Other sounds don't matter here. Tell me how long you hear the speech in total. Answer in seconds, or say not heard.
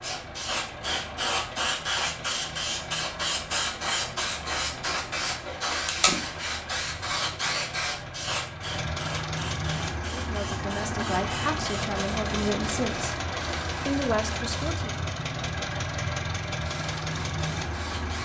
4 s.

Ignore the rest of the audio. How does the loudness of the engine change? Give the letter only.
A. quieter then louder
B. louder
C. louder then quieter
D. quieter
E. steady
B.